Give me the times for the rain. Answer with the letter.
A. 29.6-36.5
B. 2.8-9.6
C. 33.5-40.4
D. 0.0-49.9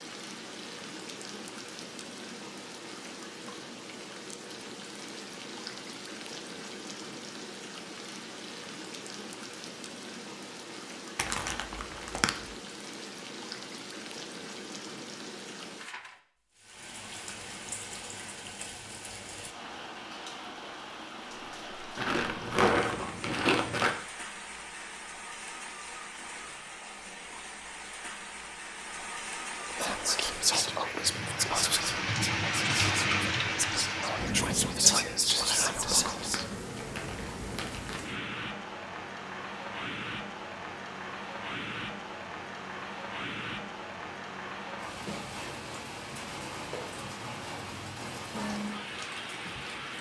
D.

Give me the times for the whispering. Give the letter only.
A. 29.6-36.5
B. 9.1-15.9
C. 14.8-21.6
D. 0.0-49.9
A.